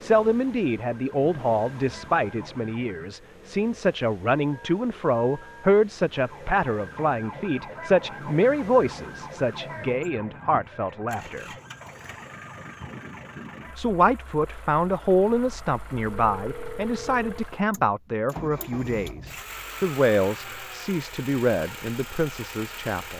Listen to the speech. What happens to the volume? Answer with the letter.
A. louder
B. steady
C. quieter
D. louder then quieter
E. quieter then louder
B.